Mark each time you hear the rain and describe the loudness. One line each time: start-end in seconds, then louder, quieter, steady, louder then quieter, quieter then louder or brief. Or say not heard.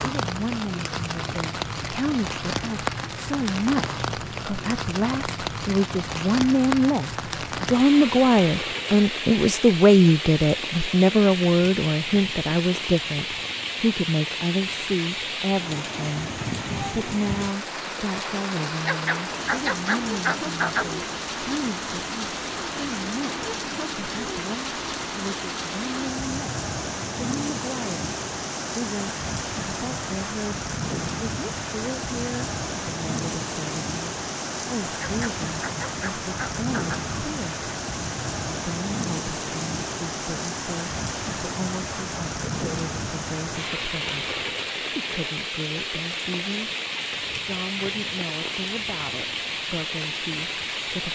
0.0-51.1 steady.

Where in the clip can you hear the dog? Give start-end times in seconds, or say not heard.
18.9-20.9, 35.0-37.0.